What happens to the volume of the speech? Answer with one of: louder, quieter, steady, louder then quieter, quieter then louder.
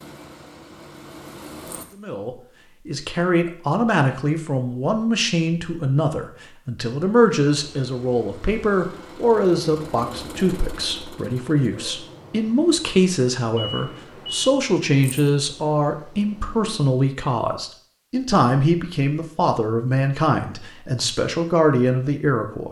steady.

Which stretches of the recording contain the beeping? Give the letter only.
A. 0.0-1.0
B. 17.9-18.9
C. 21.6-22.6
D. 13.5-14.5
D.